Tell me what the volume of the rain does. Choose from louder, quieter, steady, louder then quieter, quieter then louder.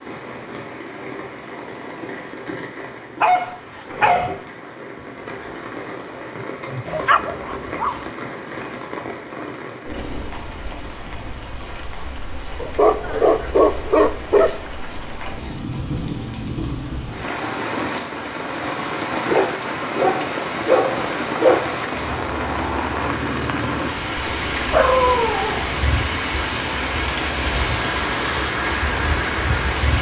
louder.